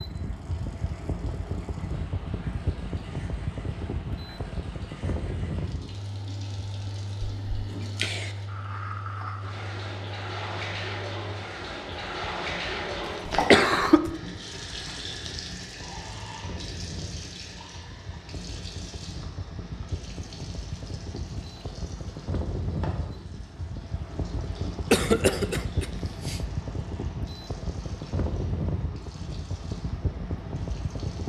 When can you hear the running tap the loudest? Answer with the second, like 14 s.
13 s.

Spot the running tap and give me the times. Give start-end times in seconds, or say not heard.
0.0-31.2.